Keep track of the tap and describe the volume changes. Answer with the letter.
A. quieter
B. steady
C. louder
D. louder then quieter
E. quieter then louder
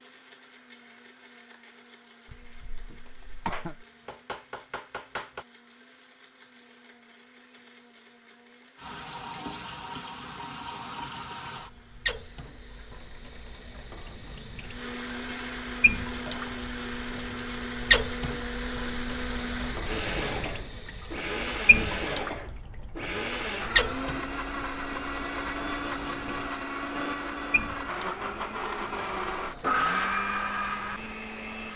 D.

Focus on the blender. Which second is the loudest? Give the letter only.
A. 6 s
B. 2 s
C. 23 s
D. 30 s
D.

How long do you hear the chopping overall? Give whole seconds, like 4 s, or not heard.
2 s.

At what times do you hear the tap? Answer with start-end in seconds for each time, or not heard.
8.8-31.7.